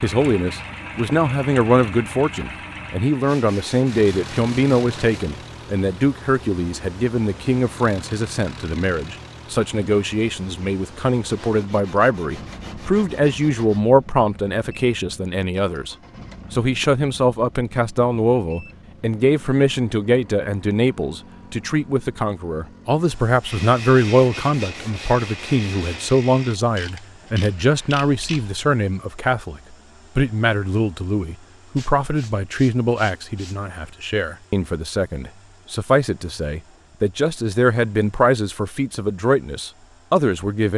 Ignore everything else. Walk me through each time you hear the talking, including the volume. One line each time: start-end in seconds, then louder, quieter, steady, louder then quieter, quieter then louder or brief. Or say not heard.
0.0-40.7 steady.